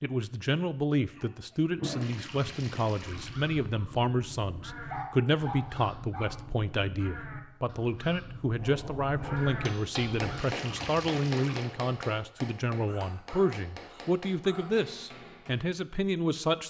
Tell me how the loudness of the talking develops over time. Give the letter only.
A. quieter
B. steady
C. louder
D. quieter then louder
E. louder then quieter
B.